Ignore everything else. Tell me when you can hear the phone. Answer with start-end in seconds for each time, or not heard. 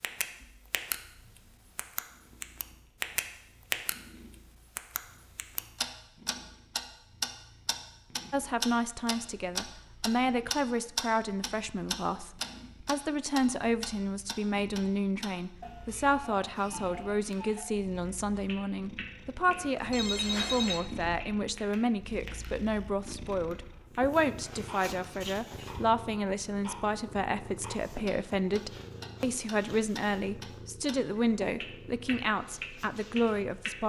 19.4-20.9.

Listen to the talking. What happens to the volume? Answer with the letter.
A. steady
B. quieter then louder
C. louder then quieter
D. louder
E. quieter
A.